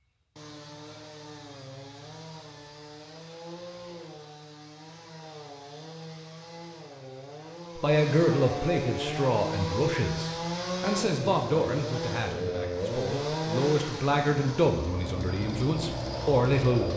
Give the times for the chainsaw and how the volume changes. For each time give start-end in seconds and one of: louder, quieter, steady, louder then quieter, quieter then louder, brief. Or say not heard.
0.0-16.9 louder.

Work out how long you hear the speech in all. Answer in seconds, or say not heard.
9 s.